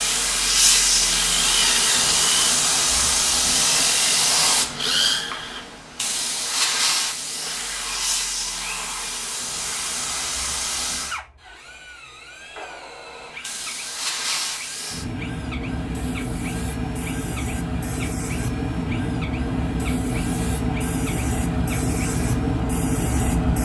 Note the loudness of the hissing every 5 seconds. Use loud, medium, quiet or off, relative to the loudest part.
loud, medium, medium, medium, loud.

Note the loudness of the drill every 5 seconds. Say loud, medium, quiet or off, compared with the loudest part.
loud, medium, quiet, quiet, quiet.